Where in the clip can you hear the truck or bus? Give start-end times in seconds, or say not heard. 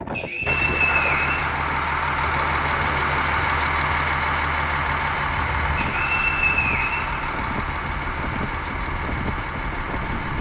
0.0-10.3.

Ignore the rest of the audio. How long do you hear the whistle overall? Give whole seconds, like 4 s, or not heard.
3 s.